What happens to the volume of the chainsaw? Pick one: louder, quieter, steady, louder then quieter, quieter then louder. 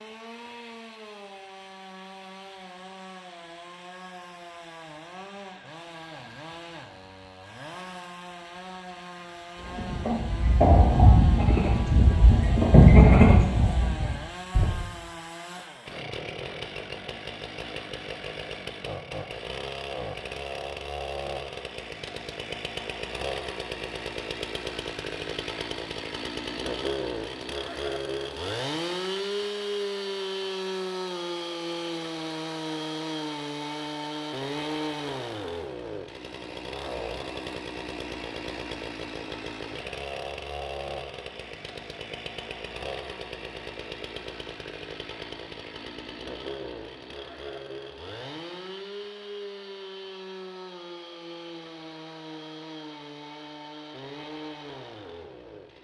louder then quieter.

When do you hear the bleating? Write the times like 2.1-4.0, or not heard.
9.6-14.7.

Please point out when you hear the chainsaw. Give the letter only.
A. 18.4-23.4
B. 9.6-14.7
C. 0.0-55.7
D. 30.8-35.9
C.